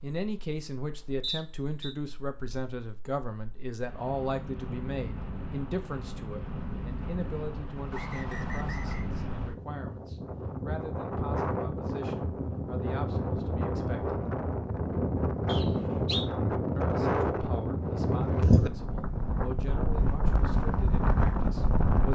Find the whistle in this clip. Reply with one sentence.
You can hear the whistle from 1.2 to 1.9 s, from 7.9 to 9.1 s and from 15.4 to 16.2 s.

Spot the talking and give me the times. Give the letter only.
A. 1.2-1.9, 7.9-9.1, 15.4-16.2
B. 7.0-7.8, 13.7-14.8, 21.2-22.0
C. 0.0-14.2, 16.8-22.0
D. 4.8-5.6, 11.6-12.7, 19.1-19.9
C.